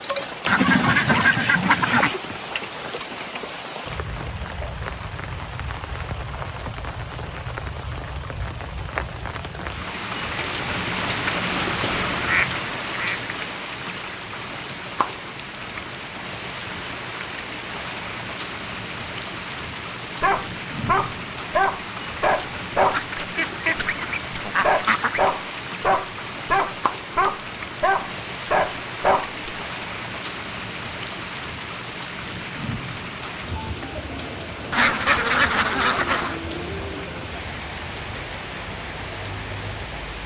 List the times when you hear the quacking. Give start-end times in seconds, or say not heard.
0.5-2.1, 12.2-13.2, 22.9-25.2, 34.7-36.4.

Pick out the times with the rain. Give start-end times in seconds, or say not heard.
0.0-40.2.